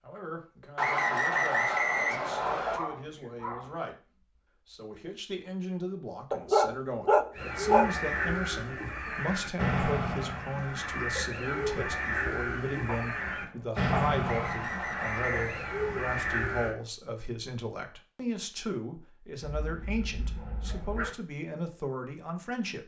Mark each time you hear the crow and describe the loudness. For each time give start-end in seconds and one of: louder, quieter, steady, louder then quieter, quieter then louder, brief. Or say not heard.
7.3-16.8 steady.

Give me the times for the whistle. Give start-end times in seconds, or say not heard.
0.8-2.8, 14.2-15.7.